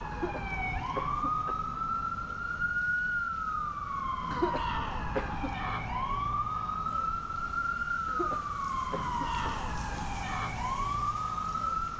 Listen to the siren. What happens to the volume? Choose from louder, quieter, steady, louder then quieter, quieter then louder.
steady.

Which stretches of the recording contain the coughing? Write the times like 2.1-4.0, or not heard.
0.1-1.6, 4.3-5.7, 8.1-9.4.